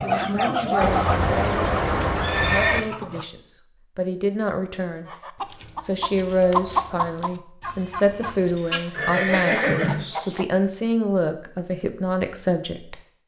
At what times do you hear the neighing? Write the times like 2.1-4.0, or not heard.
0.8-2.8, 8.9-10.1.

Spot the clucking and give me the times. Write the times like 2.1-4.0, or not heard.
0.0-3.2, 5.0-10.4.